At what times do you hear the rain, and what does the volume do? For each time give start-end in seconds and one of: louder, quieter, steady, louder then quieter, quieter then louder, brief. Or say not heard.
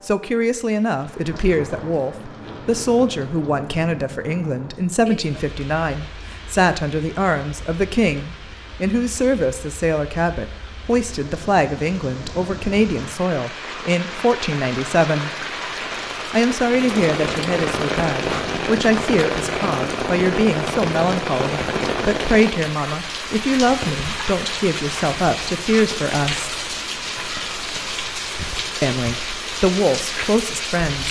0.0-31.0 louder.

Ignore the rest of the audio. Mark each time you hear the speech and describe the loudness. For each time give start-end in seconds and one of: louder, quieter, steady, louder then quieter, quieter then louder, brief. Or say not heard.
0.1-15.3 steady
16.3-26.6 steady
28.8-31.0 brief.